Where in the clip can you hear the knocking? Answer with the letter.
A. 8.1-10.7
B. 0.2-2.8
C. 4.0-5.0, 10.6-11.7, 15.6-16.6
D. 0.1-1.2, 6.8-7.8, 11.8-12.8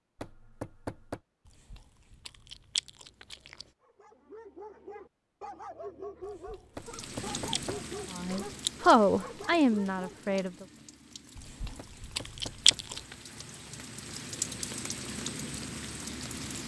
D.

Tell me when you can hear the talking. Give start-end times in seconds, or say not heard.
8.1-10.7.